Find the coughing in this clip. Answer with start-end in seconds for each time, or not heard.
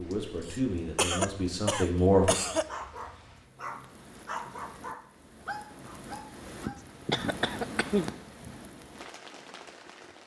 0.4-2.7, 7.0-8.5.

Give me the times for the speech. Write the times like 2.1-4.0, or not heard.
0.0-2.4.